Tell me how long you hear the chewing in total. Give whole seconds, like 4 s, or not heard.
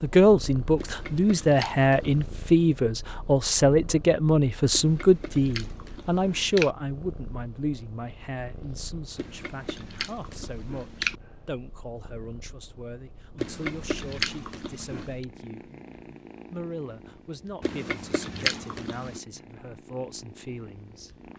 9 s.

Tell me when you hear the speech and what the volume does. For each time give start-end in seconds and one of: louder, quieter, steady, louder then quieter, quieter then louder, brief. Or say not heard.
0.0-15.7 quieter
16.5-21.1 steady.